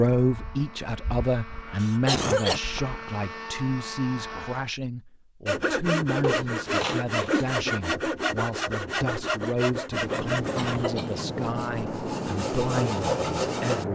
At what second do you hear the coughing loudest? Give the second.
2 s.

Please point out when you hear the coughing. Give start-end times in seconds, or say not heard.
1.8-2.6, 6.2-7.5, 10.1-11.5.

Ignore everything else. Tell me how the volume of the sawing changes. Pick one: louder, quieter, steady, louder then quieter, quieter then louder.
quieter then louder.